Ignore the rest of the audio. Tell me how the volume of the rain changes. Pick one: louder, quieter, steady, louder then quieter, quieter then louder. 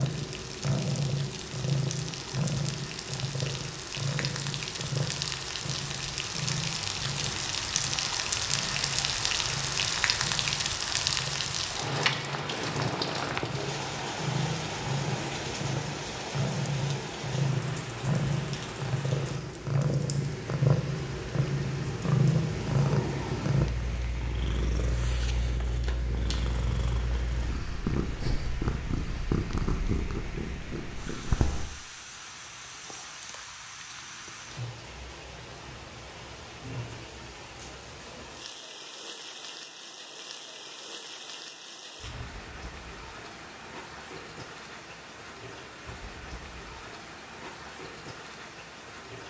quieter.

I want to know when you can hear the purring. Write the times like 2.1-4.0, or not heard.
0.0-31.7.